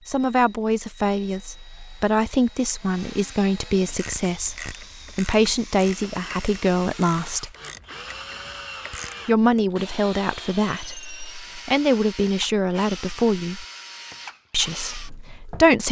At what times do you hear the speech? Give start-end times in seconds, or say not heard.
0.1-7.5, 9.2-13.7, 14.5-15.8.